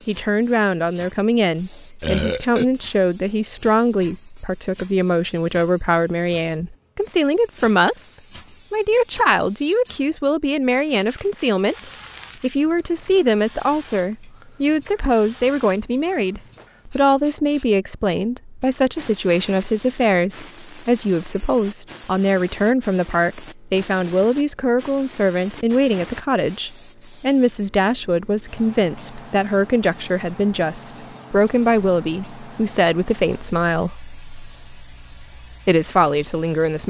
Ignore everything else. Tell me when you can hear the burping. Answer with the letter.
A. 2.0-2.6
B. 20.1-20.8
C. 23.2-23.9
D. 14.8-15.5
A.